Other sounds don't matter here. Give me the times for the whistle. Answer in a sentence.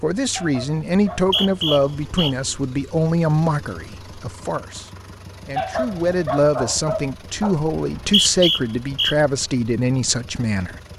The whistle can be heard from 1.1 to 2.5 s and from 7.8 to 9.2 s.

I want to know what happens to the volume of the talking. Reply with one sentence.
The loudness of the talking stays about the same.